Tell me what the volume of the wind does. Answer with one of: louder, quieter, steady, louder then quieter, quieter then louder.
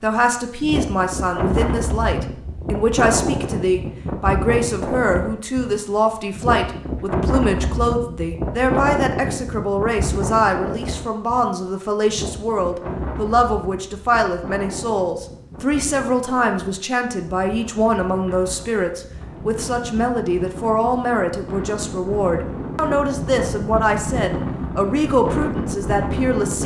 quieter then louder.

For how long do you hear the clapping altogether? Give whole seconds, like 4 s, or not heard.
not heard.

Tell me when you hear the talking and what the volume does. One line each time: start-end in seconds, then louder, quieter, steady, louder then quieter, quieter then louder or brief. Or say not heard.
0.0-26.6 steady.